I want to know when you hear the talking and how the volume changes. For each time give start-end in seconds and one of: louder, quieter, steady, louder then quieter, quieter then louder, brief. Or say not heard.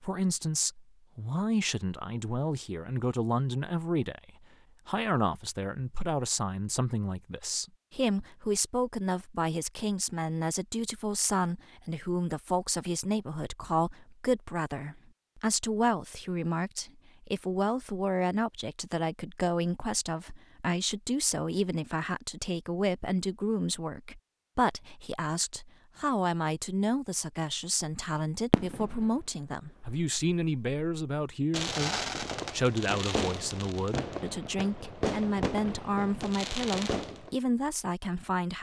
0.0-38.5 steady.